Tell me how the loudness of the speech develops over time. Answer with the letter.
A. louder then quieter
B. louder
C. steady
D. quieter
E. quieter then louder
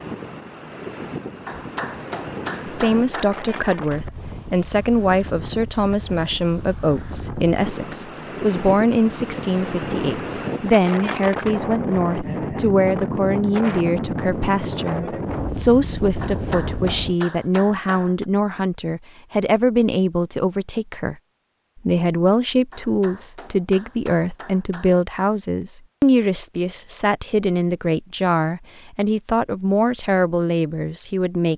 C.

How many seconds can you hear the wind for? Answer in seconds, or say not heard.
17 s.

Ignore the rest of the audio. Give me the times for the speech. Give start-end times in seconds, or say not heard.
2.6-21.1, 21.9-31.5.